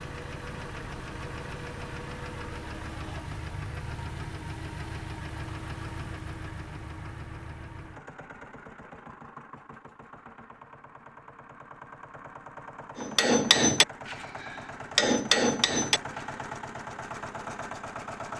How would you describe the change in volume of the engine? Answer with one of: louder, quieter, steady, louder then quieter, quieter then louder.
quieter then louder.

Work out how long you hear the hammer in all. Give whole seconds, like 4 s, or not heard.
3 s.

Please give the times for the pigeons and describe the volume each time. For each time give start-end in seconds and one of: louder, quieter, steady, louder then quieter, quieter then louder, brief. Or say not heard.
not heard.